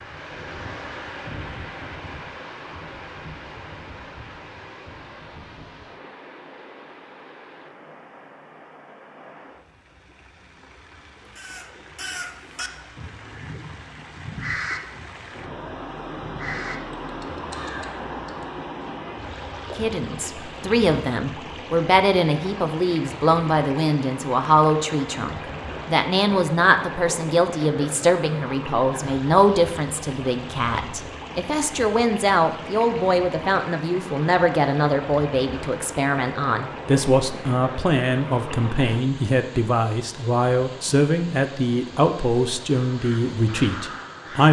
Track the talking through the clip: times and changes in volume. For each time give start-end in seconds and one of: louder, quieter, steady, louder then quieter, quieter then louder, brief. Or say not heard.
19.8-44.4 steady.